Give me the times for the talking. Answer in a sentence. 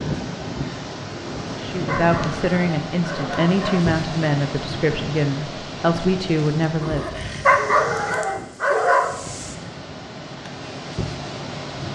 You can hear the talking from 1.6 to 7.2 s.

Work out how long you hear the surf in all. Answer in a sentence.
You can hear the surf for 12 seconds altogether.